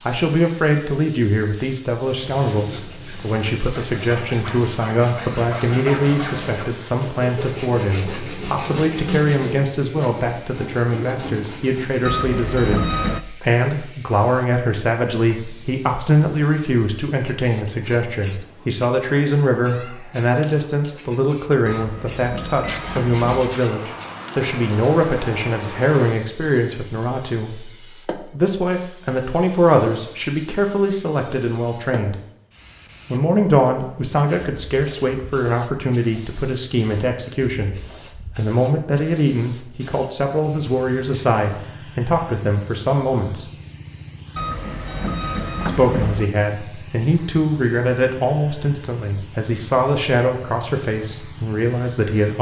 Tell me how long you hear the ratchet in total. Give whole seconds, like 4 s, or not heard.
not heard.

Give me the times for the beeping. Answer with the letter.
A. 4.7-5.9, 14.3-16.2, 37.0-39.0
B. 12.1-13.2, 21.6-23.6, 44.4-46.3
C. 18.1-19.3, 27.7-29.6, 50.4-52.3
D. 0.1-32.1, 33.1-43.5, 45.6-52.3
B.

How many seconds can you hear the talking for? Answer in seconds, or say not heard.
49 s.